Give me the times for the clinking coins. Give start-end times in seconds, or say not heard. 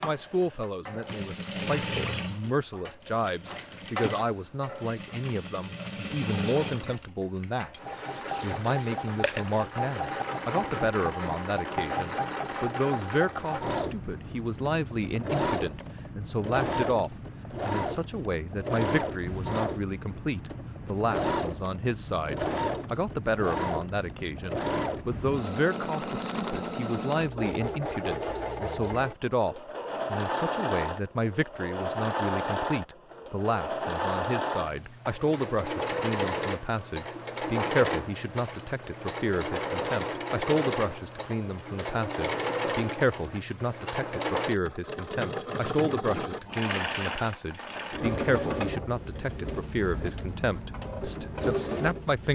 9.2-9.7.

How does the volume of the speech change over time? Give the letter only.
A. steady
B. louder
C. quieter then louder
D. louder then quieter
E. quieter
A.